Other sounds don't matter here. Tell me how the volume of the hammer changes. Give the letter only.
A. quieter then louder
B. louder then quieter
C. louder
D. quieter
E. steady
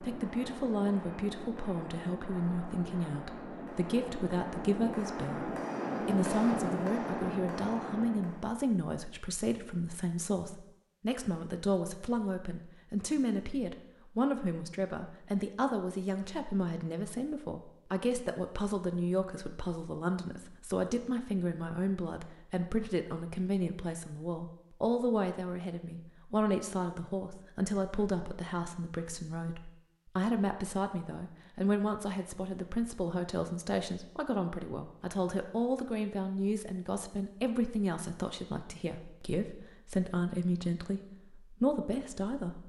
C.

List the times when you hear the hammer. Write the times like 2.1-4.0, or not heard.
0.0-8.5.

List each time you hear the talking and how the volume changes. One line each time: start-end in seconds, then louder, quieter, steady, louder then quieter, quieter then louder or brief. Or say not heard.
0.0-42.6 steady.